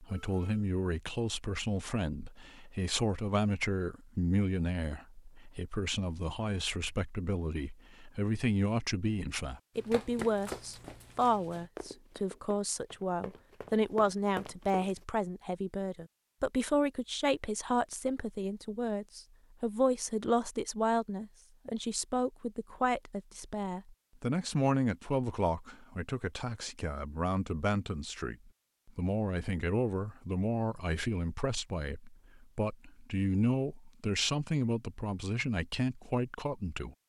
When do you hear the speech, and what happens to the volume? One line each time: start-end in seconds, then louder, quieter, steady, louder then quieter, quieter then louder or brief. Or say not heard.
0.0-37.0 steady.